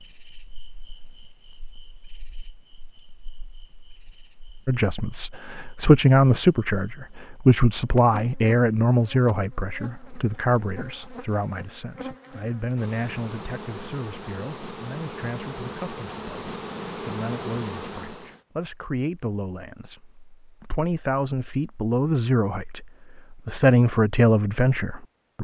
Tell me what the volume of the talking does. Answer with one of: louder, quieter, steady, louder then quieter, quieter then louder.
quieter then louder.